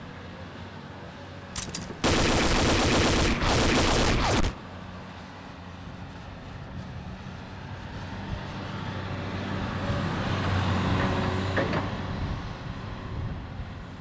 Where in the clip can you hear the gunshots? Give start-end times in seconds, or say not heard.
1.6-4.5.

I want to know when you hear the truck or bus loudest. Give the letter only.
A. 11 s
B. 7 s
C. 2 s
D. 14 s
A.